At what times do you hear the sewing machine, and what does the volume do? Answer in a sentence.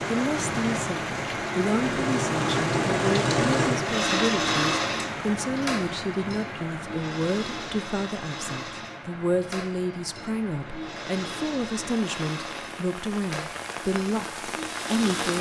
The sewing machine can be heard from 0.0 to 15.3 s, getting quieter.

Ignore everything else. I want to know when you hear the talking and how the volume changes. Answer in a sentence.
You can hear the talking from 0.1 to 15.3 s, at a steady volume.